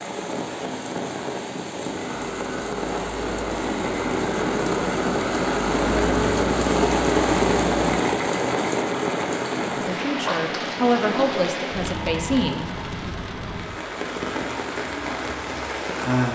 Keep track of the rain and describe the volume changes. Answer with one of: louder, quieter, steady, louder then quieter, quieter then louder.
louder then quieter.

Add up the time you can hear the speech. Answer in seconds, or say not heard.
3 s.